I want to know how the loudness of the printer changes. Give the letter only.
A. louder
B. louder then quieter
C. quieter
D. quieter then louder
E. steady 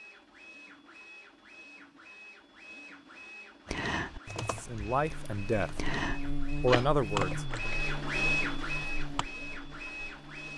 A.